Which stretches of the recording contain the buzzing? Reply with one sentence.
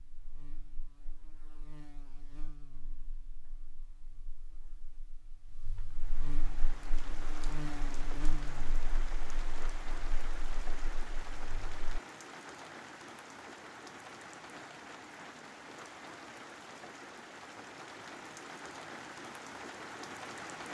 The buzzing can be heard from 0.0 to 12.0 s.